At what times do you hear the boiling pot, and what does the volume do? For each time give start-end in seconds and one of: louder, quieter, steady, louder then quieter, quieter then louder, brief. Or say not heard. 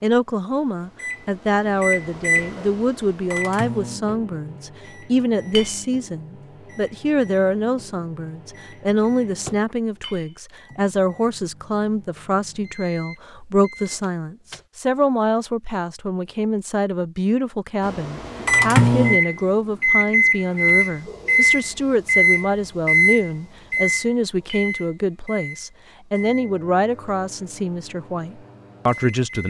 not heard.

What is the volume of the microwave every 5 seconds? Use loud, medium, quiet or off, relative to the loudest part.
medium, quiet, quiet, loud, loud, quiet.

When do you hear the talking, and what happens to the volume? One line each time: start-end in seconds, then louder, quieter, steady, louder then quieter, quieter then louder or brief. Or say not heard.
0.0-29.4 steady.